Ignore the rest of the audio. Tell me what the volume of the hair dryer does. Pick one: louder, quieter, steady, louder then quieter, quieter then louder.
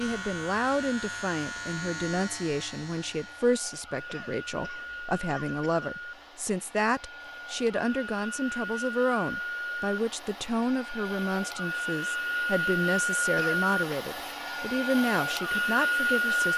louder.